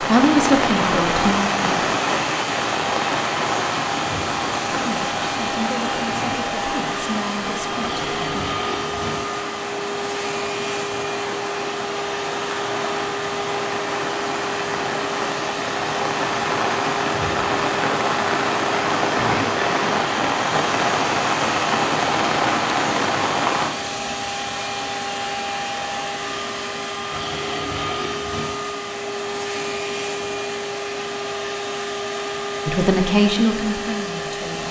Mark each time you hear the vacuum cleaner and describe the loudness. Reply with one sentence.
You can hear the vacuum cleaner from 0.0 to 34.6 s, at a steady volume.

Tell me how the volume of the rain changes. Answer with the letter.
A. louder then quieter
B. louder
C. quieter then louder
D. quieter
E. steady
C.